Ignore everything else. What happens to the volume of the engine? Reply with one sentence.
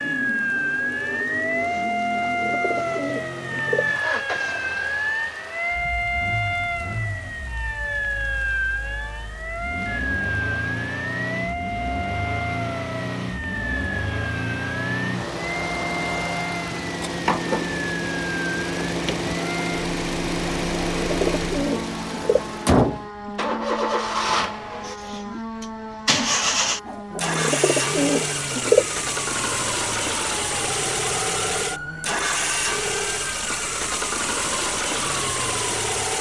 The loudness of the engine goes up.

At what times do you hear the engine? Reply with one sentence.
The engine can be heard from 0.0 to 36.1 s.